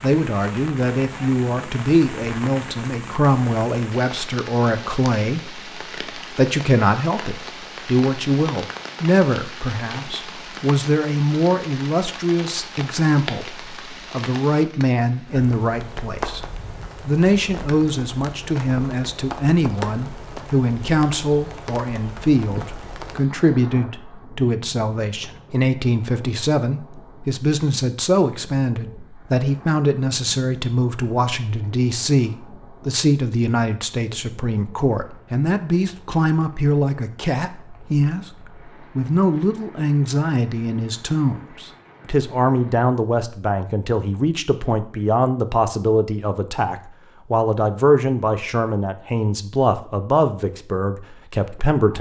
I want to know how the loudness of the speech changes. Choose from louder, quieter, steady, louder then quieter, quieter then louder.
steady.